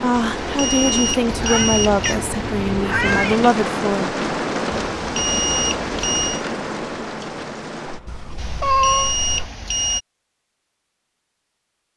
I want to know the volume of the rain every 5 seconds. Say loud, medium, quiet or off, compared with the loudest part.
loud, loud, off.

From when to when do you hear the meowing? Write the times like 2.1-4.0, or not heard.
1.2-3.5, 8.1-9.2.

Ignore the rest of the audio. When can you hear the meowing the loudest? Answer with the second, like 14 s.
9 s.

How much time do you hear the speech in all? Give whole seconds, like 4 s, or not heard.
4 s.